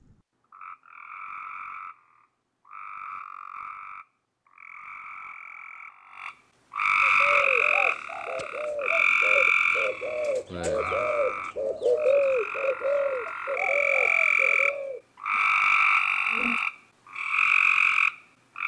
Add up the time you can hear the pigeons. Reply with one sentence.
You can hear the pigeons for 8 seconds altogether.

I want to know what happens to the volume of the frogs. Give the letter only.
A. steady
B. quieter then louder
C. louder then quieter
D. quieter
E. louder
E.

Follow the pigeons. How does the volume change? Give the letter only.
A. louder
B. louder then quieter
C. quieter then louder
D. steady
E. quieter
B.